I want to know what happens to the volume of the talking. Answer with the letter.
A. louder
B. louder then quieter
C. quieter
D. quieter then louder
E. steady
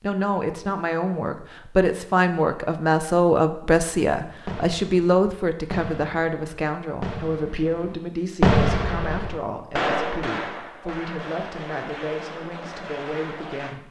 C.